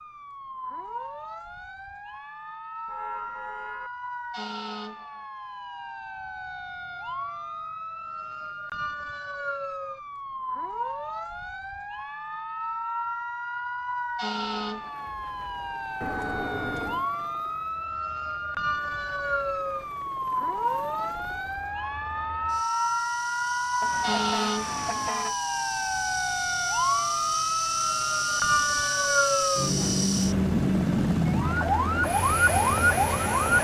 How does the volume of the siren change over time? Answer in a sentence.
The volume of the siren goes up.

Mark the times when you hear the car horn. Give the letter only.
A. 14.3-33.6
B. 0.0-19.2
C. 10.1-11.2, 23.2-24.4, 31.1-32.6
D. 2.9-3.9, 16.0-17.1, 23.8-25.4
D.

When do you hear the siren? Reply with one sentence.
The siren can be heard from 0.0 to 33.6 s.